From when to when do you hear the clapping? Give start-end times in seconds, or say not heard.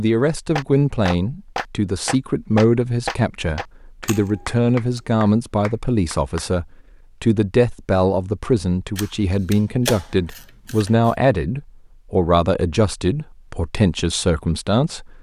0.6-6.5.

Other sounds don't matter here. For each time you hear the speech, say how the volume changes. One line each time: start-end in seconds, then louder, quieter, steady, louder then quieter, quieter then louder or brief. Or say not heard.
0.0-15.1 steady.